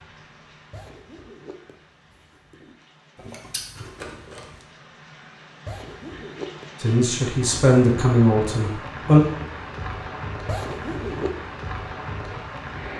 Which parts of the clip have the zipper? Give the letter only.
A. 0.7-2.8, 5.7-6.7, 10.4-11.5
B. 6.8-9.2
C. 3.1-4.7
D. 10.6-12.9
A.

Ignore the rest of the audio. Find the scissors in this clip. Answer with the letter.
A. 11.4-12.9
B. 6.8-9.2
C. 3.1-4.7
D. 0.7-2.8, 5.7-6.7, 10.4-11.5
C.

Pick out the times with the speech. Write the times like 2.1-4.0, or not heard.
6.8-9.2.